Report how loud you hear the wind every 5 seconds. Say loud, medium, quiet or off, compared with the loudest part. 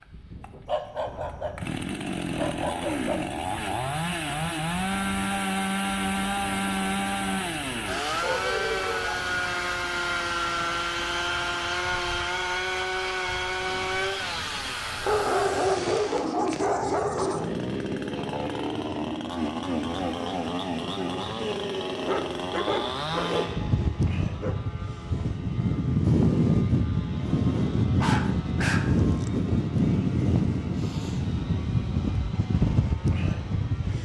quiet, quiet, quiet, quiet, medium, loud, loud.